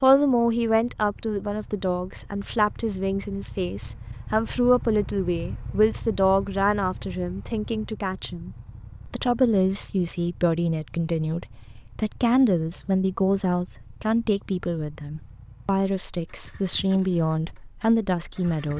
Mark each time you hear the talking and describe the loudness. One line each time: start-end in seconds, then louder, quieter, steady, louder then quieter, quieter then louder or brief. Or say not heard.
0.0-18.7 steady.